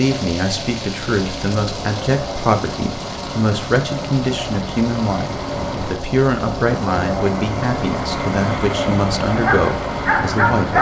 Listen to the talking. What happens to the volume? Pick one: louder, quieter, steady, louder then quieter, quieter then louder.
steady.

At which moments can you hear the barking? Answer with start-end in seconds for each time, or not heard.
9.2-10.7.